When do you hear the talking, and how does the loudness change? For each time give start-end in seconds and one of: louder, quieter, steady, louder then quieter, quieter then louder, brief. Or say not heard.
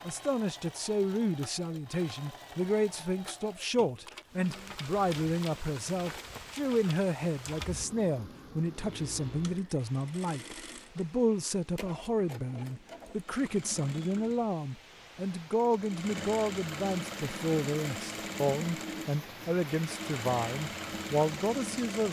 0.0-22.0 steady.